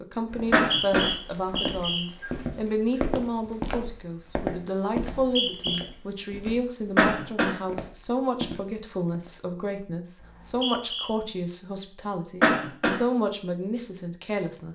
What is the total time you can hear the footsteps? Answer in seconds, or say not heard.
9 s.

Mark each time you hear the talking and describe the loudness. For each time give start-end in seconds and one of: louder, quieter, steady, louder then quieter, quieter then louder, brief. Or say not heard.
0.0-14.7 steady.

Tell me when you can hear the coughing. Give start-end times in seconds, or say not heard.
0.5-1.1, 7.0-7.5, 12.4-13.0.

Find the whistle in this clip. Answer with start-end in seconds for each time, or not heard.
0.3-2.0, 5.1-5.8, 10.2-11.1.